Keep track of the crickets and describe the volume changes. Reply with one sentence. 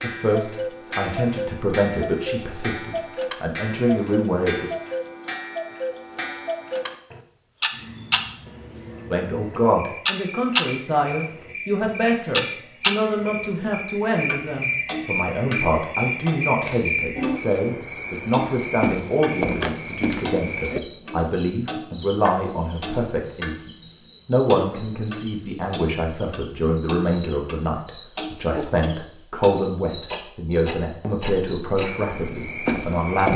The volume of the crickets goes up.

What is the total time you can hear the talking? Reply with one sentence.
You can hear the talking for 29 seconds altogether.